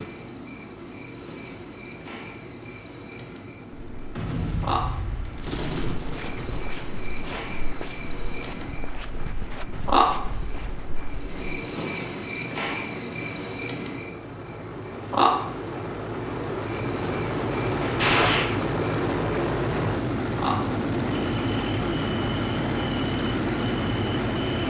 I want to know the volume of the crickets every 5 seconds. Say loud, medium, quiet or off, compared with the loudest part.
medium, loud, loud, loud, medium.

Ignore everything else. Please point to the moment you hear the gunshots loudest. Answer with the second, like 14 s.
18 s.